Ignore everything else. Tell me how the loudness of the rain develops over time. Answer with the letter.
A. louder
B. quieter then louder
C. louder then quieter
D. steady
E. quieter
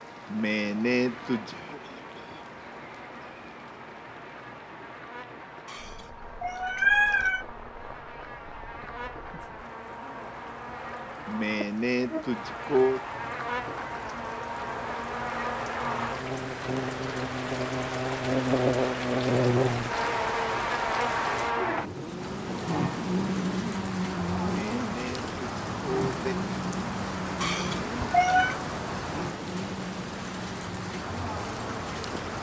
A.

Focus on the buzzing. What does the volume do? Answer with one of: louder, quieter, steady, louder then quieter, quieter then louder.
louder then quieter.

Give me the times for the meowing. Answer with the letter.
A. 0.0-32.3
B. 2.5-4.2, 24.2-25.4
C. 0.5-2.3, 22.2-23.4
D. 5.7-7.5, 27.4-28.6
D.